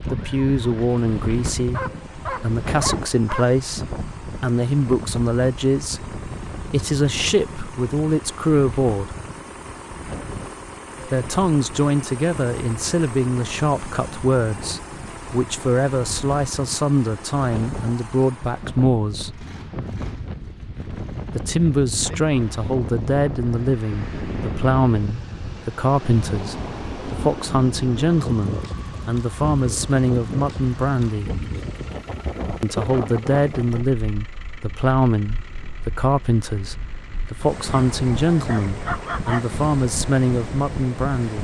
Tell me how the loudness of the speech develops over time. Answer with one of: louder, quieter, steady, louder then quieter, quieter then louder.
steady.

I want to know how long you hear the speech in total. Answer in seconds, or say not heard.
36 s.